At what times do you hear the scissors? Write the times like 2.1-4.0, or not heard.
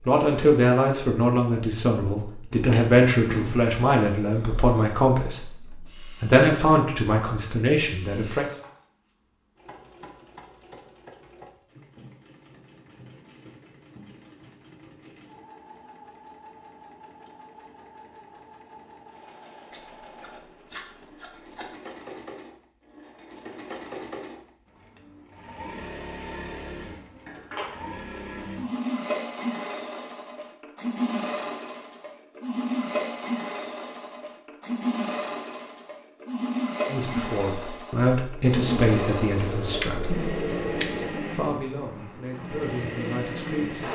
2.5-3.7, 19.7-21.7, 38.5-41.1.